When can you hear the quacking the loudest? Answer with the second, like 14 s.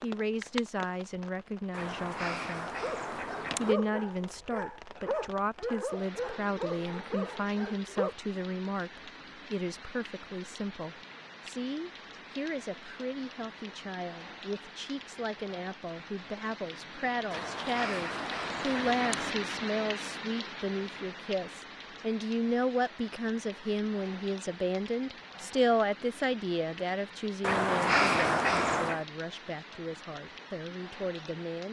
28 s.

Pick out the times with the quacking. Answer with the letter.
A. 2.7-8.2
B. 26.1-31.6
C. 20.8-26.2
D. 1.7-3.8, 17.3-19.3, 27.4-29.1
D.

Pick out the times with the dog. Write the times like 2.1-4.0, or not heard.
2.7-8.2.